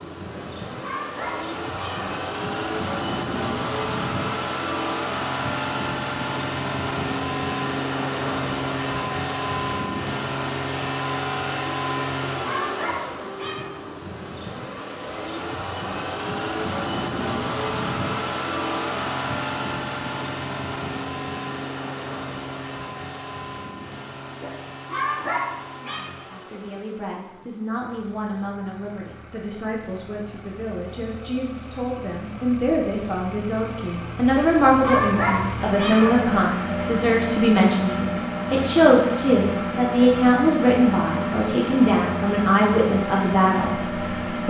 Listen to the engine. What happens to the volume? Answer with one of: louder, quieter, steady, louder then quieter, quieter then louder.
quieter then louder.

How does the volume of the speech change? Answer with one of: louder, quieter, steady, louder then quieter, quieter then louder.
louder.